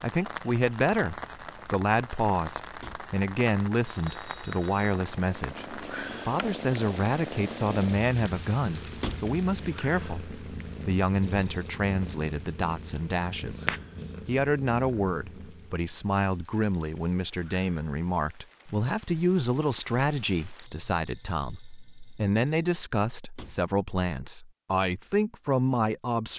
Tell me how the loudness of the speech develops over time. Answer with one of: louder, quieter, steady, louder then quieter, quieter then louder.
steady.